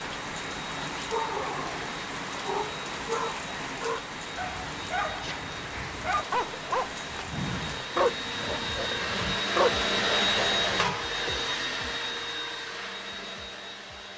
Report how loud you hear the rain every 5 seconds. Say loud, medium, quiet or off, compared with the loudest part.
loud, loud, off.